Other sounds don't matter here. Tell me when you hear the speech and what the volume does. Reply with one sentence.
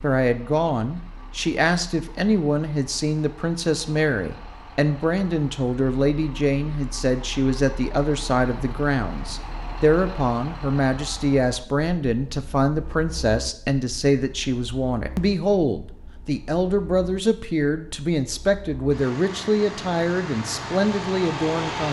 You can hear the speech from 0.0 to 21.8 s, at a steady volume.